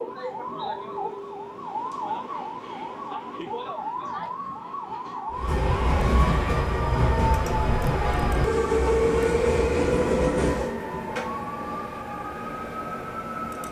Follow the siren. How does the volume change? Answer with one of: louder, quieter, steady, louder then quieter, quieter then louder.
steady.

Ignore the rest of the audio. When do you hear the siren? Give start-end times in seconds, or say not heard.
0.0-13.6.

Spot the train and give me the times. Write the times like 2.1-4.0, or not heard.
5.3-10.8.